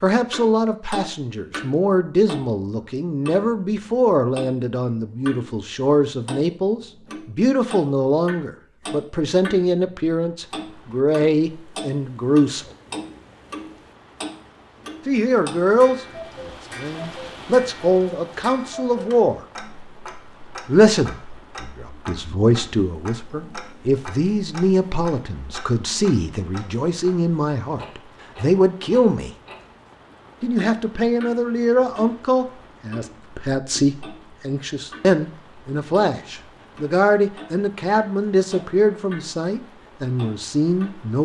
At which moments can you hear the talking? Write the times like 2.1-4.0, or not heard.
0.0-12.7, 15.1-16.1, 16.8-19.4, 20.6-29.3, 30.4-41.2.